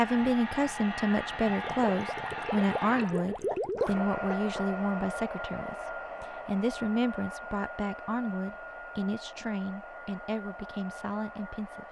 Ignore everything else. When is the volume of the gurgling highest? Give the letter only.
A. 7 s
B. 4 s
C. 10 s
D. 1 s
B.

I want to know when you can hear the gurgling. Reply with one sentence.
The gurgling can be heard from 1.6 to 4.0 s.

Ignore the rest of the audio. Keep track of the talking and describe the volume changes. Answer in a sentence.
The volume of the talking goes down.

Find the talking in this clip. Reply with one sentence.
The talking can be heard from 0.0 to 11.8 s.